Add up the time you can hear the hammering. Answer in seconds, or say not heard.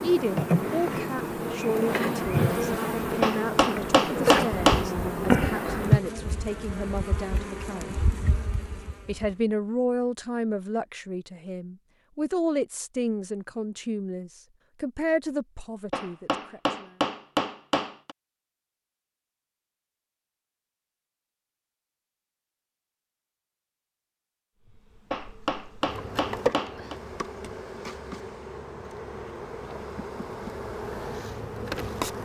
6 s.